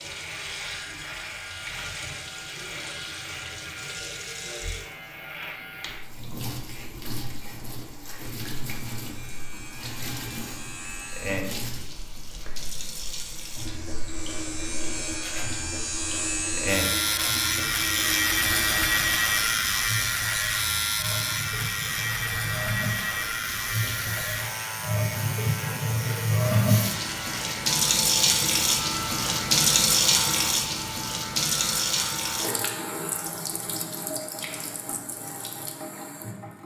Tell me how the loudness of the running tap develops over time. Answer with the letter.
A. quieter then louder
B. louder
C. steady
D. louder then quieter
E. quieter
B.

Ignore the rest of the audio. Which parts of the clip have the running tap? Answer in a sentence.
You can hear the running tap from 0.0 to 36.6 s.